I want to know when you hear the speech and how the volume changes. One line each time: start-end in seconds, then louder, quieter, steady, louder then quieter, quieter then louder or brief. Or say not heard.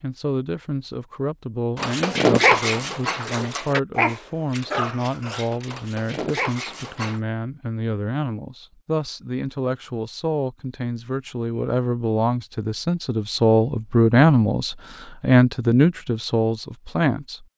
0.0-17.4 louder.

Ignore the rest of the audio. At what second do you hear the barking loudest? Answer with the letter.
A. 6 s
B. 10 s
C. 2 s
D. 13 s
C.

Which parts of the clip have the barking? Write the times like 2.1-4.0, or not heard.
1.8-7.2.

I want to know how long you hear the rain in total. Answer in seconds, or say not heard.
not heard.